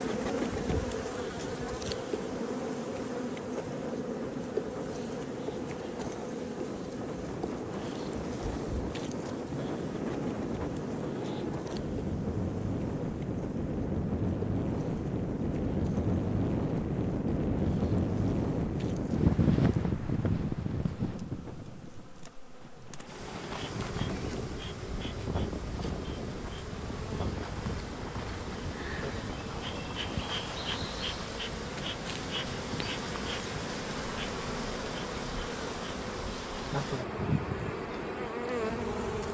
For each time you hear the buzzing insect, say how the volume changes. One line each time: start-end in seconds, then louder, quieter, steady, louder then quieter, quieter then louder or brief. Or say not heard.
0.0-39.3 quieter then louder.